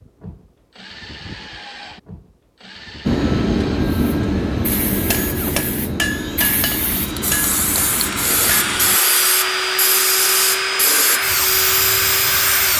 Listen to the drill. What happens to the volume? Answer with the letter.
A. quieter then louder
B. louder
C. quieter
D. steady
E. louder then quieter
B.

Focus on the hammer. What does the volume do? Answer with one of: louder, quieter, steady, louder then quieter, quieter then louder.
quieter.